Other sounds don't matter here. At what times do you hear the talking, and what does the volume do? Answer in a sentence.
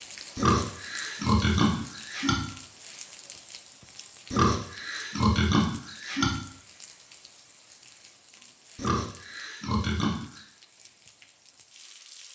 The talking can't be heard in this clip.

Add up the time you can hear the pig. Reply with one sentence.
You can hear the pig for 6 seconds altogether.